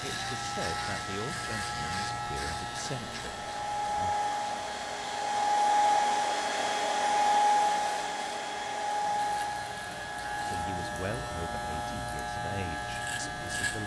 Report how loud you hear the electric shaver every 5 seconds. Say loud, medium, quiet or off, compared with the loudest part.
loud, medium, loud.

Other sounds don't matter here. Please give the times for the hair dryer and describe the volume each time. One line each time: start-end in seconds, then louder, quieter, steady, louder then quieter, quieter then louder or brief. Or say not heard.
0.1-13.8 louder then quieter.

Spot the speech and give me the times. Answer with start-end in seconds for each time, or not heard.
0.0-4.2, 10.4-13.8.